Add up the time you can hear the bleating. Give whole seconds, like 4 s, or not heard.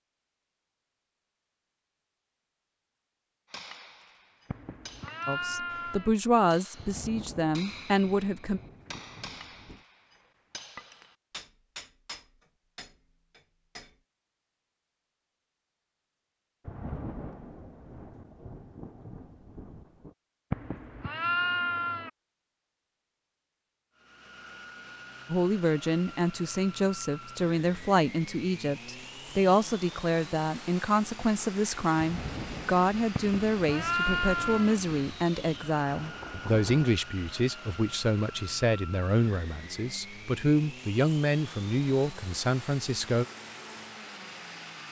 5 s.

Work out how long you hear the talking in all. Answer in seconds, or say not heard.
21 s.